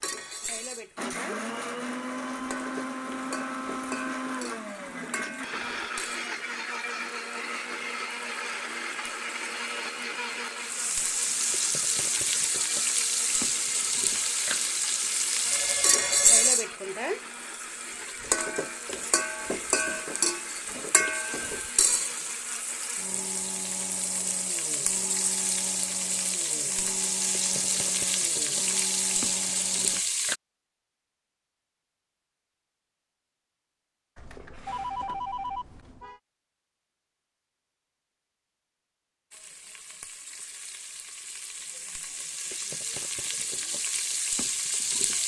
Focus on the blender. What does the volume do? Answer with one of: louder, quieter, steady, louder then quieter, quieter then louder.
quieter.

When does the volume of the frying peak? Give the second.
16 s.